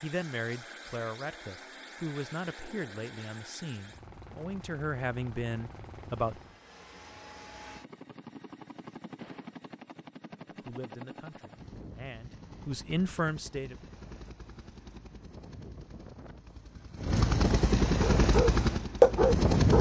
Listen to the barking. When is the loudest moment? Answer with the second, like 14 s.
19 s.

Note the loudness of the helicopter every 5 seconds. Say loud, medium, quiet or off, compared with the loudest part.
quiet, quiet, quiet, loud.